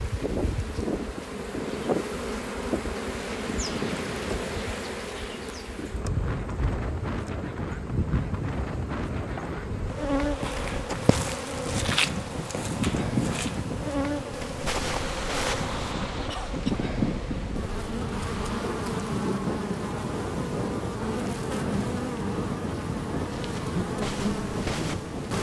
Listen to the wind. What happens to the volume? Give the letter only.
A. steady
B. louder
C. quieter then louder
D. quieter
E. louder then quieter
A.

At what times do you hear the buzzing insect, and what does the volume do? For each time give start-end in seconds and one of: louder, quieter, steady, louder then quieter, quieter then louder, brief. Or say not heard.
0.0-25.3 steady.